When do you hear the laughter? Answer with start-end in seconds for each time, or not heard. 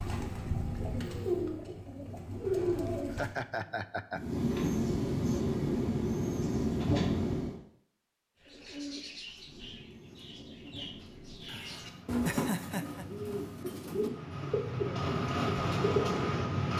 2.9-4.2, 11.4-13.1.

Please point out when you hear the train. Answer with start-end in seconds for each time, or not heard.
4.1-7.6, 9.3-16.7.